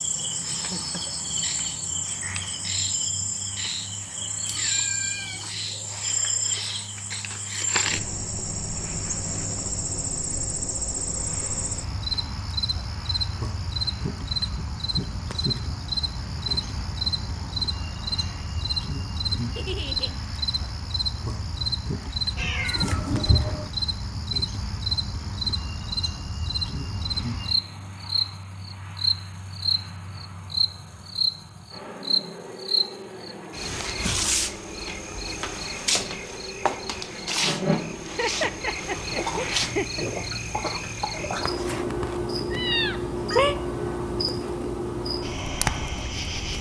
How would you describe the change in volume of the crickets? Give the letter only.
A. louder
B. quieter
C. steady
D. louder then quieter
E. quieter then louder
C.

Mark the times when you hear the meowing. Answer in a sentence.
You can hear the meowing from 4.5 to 5.4 s, from 22.4 to 23.7 s and from 42.5 to 43.5 s.